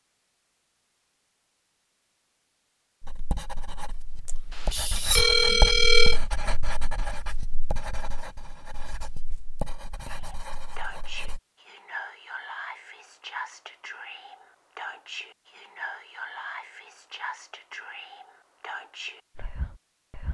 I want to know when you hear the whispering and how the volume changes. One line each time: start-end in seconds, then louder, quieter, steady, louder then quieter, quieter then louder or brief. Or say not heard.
10.1-20.2 steady.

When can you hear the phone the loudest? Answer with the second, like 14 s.
6 s.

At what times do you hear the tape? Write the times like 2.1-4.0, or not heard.
not heard.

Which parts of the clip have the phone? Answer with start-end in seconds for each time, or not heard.
4.2-6.2.